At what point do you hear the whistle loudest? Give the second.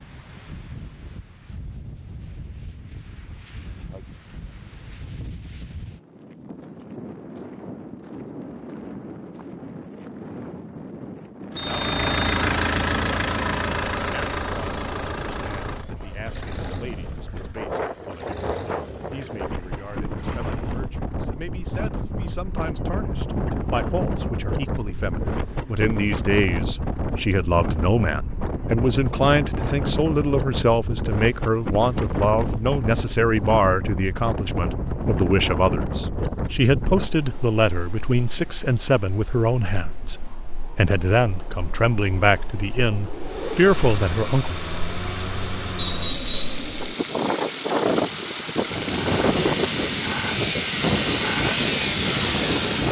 46 s.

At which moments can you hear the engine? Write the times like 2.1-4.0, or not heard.
11.6-20.9, 43.2-52.8.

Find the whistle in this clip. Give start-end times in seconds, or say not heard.
11.6-12.4, 45.8-46.6.